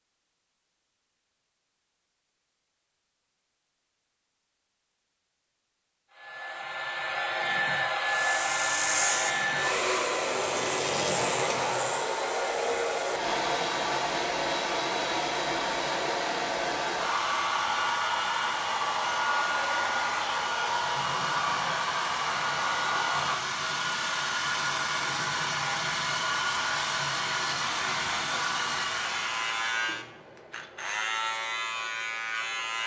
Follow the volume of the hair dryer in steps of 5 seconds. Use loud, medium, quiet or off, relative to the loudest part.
off, loud, loud, loud, loud, loud, off.